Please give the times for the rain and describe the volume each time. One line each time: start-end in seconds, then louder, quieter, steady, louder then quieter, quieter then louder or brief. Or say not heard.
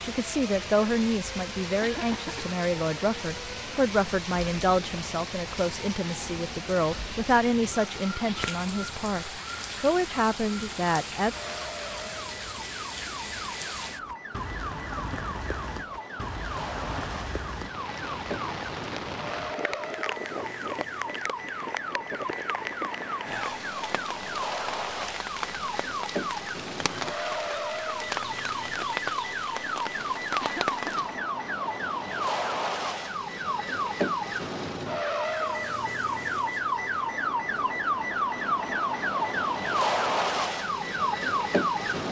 0.0-31.1 steady.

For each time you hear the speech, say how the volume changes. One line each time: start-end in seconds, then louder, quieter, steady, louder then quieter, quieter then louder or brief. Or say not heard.
0.0-11.3 steady.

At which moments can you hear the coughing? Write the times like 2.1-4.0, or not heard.
1.8-2.5, 30.4-31.1.